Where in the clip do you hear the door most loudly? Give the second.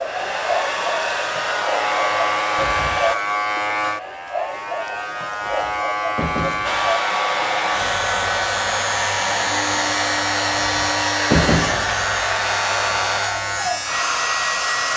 11 s.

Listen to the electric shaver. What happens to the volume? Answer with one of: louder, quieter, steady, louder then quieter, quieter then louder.
steady.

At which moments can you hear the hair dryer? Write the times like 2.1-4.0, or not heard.
0.0-3.1, 6.6-14.9.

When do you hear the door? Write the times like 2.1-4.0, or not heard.
2.5-3.1, 5.4-6.8, 10.6-12.2.